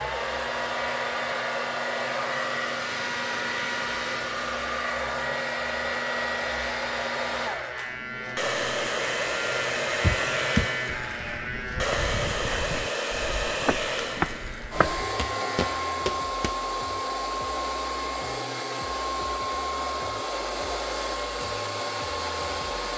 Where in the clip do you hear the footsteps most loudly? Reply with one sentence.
The loudest moment of the footsteps is at 14 seconds.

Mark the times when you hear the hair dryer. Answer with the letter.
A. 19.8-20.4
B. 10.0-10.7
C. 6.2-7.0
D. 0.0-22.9
D.